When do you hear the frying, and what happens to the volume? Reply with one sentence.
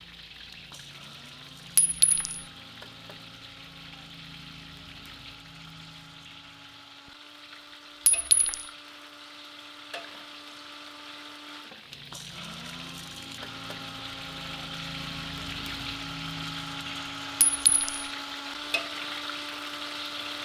You can hear the frying from 0.0 to 20.4 s, getting louder.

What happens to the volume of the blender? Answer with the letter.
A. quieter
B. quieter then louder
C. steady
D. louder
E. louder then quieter
D.